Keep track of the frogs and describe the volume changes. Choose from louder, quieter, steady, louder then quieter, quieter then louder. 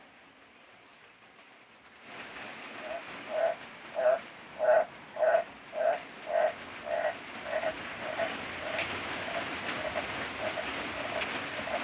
quieter.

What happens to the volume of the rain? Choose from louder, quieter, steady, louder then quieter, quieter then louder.
louder.